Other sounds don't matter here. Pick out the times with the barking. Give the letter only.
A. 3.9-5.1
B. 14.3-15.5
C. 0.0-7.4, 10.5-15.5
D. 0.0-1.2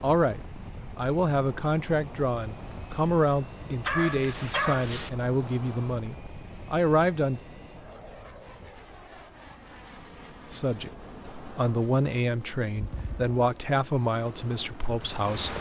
A.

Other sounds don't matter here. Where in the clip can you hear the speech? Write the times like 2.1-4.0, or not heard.
0.0-7.4, 10.5-15.5.